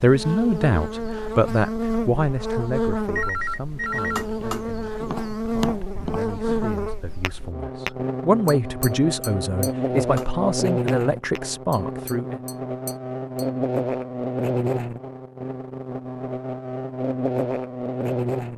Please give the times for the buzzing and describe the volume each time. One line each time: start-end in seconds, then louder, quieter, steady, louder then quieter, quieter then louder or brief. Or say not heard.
0.0-18.5 steady.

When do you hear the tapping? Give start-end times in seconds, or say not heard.
4.2-13.5.